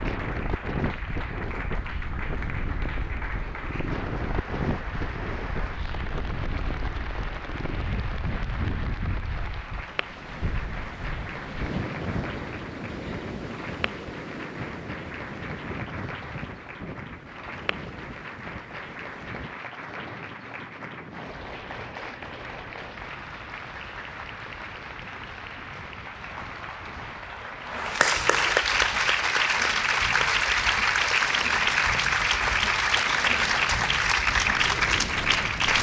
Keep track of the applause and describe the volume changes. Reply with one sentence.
The loudness of the applause goes up.